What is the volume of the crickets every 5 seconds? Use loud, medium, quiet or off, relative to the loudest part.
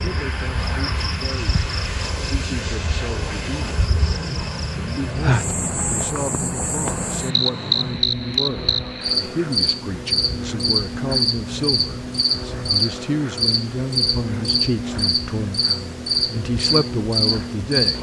medium, loud, loud, loud.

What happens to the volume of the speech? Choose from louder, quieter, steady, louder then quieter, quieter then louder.
louder.